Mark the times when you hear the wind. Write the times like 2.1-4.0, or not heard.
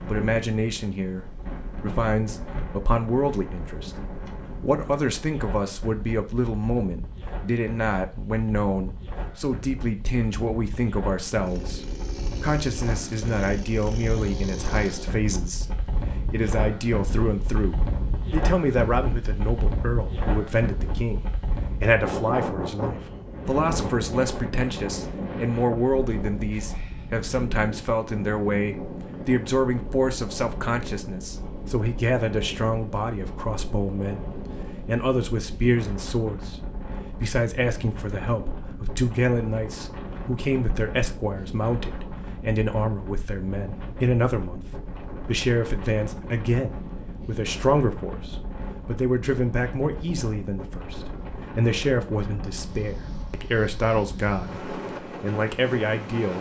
0.0-56.3.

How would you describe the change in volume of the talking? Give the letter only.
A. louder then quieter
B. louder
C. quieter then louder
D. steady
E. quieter
D.